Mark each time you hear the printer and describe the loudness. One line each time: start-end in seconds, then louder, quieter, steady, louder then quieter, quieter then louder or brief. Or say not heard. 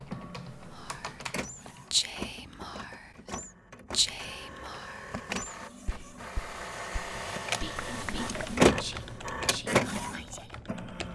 0.1-11.1 louder.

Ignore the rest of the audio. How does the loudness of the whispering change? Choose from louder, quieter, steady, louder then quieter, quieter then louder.
quieter.